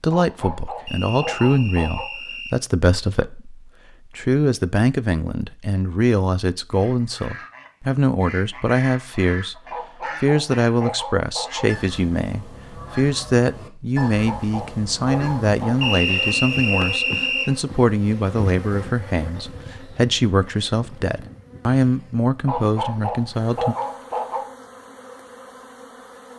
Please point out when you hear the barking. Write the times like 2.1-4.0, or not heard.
0.1-2.0, 9.7-11.7, 13.9-15.9, 22.4-24.4.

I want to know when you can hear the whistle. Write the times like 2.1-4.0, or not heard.
0.8-2.5, 15.8-17.5.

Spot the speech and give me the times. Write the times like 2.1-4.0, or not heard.
0.0-9.6, 10.2-23.8.